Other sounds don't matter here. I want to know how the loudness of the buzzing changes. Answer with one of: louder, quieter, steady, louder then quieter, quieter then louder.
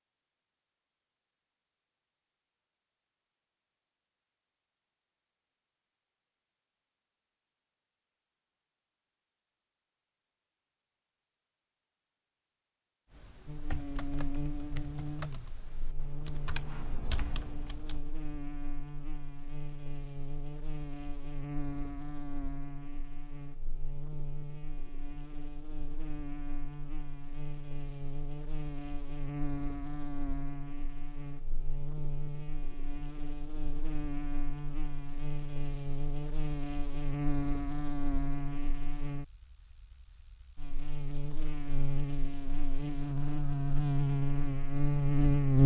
louder.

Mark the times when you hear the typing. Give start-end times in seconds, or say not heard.
13.1-18.0.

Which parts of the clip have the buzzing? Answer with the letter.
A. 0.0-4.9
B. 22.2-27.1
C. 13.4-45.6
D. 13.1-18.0
C.